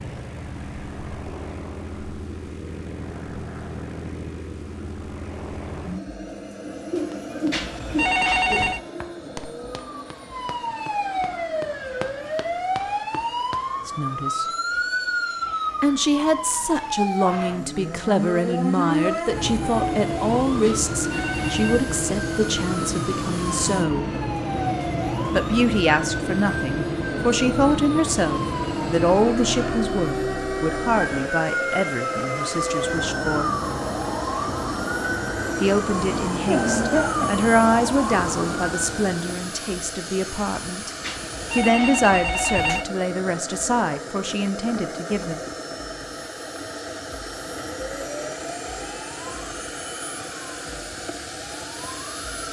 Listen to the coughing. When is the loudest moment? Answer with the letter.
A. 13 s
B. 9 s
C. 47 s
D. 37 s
D.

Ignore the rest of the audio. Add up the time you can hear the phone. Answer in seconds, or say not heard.
4 s.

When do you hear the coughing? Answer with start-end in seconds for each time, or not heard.
6.8-8.8, 36.5-37.3.